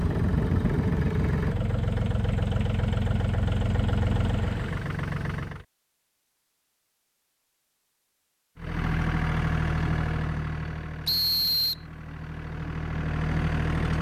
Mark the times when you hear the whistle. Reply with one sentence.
You can hear the whistle from 11.1 to 11.8 s.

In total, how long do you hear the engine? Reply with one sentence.
The engine can be heard for 11 seconds in total.